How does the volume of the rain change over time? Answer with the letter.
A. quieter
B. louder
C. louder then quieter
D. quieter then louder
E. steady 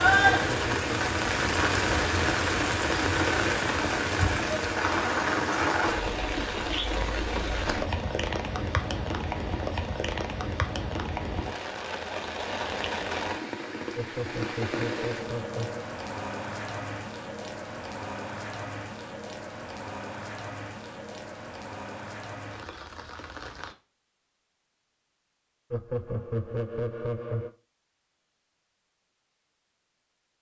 A.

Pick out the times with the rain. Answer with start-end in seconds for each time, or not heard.
0.0-23.8.